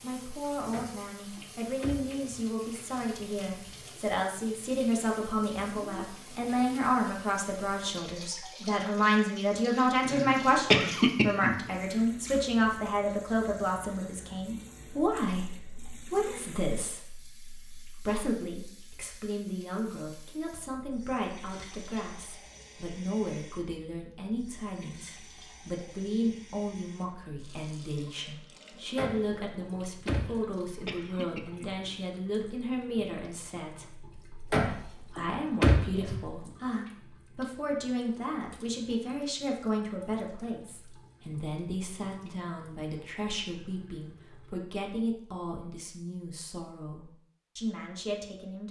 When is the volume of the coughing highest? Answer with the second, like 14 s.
11 s.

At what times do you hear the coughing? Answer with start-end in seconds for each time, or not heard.
10.1-11.6, 30.2-31.9.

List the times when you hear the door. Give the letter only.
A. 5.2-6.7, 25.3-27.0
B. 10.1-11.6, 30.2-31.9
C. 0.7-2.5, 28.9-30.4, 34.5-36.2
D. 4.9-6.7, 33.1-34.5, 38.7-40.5
C.